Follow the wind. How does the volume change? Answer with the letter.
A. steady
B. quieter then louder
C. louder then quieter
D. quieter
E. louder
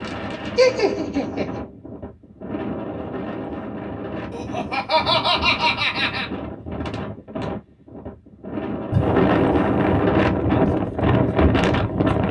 E.